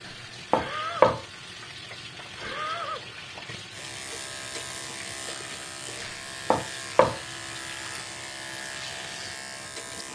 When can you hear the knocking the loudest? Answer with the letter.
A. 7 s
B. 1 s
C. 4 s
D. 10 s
B.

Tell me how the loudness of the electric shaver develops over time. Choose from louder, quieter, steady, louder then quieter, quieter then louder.
steady.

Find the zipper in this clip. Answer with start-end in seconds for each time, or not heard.
not heard.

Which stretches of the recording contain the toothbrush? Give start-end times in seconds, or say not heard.
not heard.